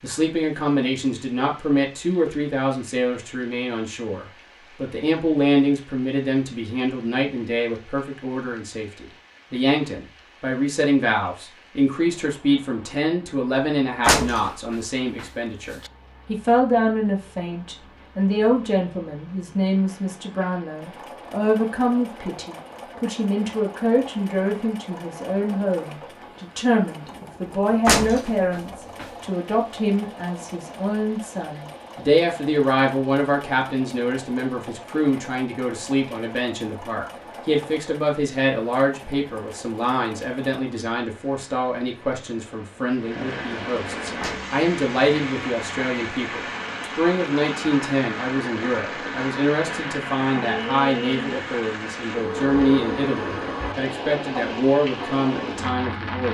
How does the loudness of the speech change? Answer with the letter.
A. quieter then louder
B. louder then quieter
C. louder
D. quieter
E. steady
E.